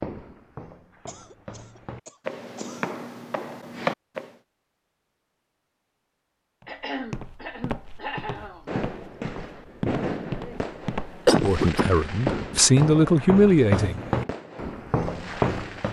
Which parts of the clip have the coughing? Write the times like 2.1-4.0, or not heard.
1.1-3.0, 6.7-8.7, 11.2-11.9.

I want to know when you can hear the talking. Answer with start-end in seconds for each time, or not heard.
11.4-14.0.